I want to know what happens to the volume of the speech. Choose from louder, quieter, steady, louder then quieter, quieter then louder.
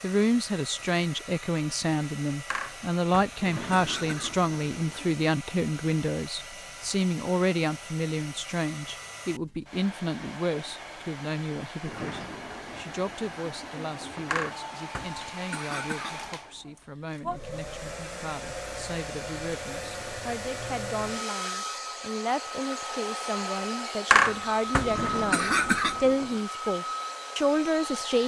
quieter then louder.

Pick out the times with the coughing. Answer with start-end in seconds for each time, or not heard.
2.5-4.3, 14.3-16.3, 24.1-25.9.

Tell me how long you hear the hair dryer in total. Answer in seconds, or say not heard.
28 s.